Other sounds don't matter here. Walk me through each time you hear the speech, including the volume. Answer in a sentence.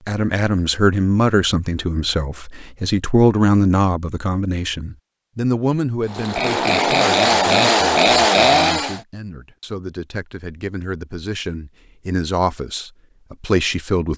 You can hear the speech from 0.1 to 14.1 s, getting quieter then louder.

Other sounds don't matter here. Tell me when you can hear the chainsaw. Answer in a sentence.
The chainsaw can be heard from 6.0 to 9.0 s.